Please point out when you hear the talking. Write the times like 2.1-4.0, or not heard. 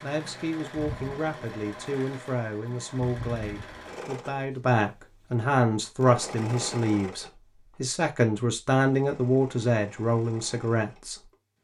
0.0-11.2.